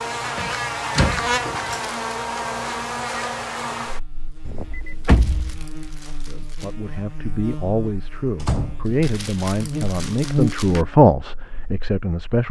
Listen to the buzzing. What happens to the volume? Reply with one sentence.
The loudness of the buzzing goes down, then up.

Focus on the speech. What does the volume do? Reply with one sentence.
The loudness of the speech goes up.